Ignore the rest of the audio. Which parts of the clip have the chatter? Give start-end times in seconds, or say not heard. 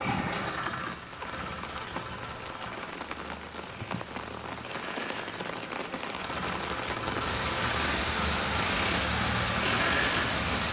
not heard.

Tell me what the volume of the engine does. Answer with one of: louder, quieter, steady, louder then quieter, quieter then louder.
quieter then louder.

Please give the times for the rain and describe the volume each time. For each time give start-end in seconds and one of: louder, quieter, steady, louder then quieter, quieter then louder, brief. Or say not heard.
0.0-10.6 louder.